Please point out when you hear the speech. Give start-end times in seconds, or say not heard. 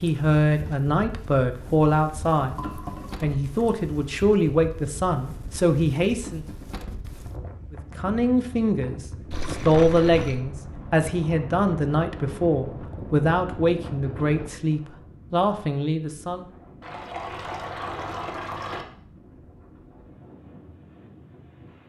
0.0-6.5, 7.7-16.4.